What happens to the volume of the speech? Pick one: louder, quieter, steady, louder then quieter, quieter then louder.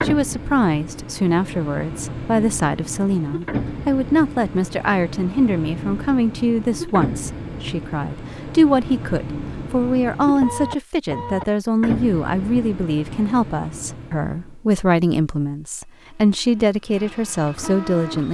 steady.